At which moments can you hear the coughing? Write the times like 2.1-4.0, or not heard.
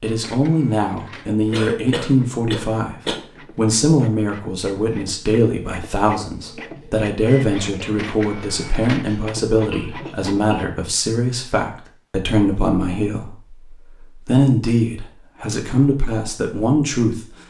1.5-3.2, 9.1-10.7.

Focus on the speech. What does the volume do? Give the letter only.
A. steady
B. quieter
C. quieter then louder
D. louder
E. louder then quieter
A.